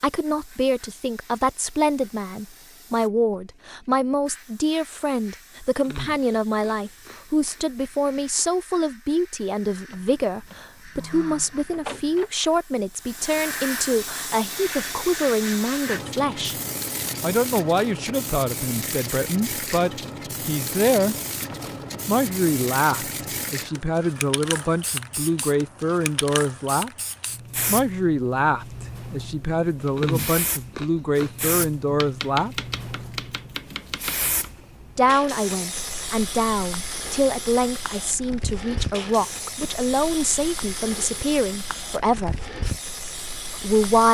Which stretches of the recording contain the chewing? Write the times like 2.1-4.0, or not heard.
5.8-8.4, 29.9-31.4.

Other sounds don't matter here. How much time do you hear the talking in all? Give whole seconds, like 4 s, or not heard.
38 s.